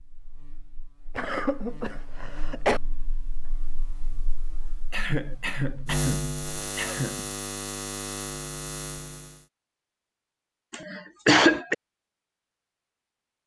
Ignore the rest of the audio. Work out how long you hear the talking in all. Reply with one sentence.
You can't hear the talking here.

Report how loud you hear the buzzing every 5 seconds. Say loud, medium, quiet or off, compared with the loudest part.
quiet, loud, off.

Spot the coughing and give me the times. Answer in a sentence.
The coughing can be heard from 1.1 to 2.8 s, from 4.9 to 7.2 s and from 10.7 to 11.8 s.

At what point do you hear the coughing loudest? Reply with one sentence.
The loudest moment of the coughing is at 11 seconds.